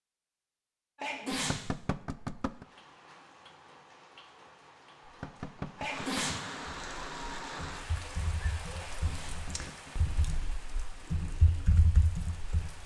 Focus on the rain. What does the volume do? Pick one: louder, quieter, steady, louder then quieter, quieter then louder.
louder then quieter.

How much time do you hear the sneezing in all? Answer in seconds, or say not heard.
2 s.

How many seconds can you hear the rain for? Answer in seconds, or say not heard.
10 s.